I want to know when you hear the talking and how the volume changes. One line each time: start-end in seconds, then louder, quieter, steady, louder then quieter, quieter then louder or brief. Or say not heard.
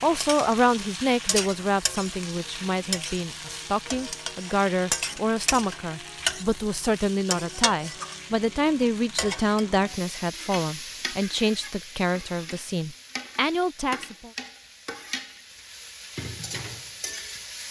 0.0-14.3 steady.